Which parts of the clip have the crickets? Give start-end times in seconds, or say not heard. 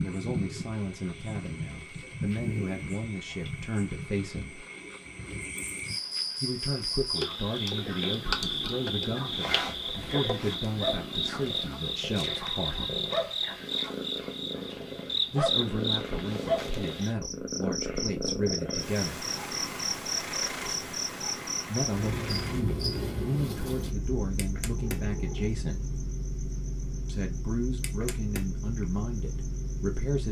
0.0-30.2.